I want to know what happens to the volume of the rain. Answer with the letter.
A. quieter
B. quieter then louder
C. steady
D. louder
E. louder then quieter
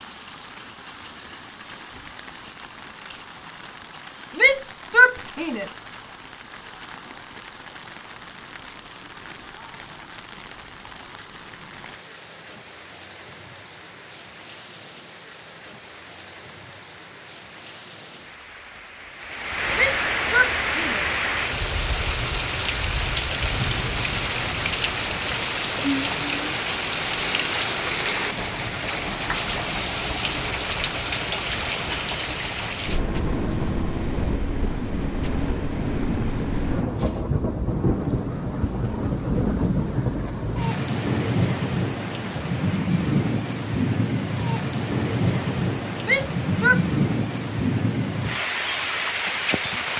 D.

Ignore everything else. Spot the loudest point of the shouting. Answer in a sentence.
The loudest moment of the shouting is at 5 seconds.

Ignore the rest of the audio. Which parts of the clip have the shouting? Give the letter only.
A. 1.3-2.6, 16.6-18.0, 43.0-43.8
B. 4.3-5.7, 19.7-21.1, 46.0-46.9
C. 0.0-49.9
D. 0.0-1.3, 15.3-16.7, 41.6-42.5
B.